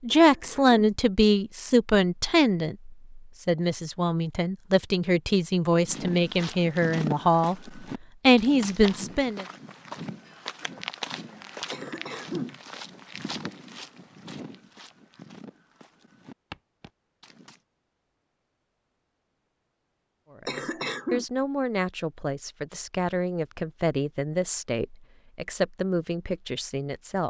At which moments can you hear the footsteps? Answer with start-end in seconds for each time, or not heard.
5.8-17.6.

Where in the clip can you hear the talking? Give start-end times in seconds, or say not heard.
0.0-9.4, 20.3-27.2.